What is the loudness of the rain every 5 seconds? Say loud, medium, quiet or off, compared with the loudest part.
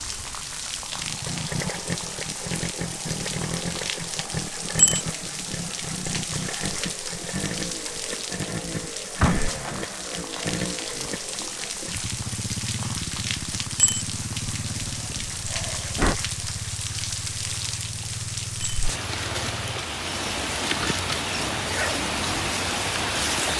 medium, medium, medium, medium, loud.